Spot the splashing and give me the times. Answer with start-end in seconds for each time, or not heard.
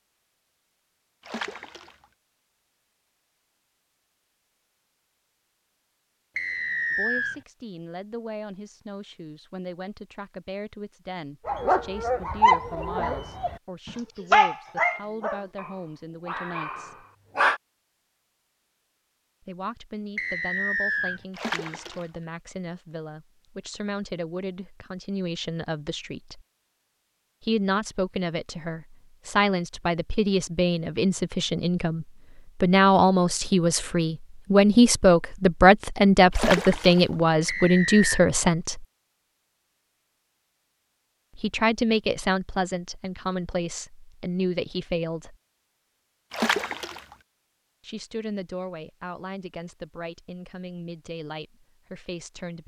1.2-2.0, 21.4-22.1, 36.3-37.1, 46.3-47.1.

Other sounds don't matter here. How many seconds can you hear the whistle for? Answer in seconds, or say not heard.
3 s.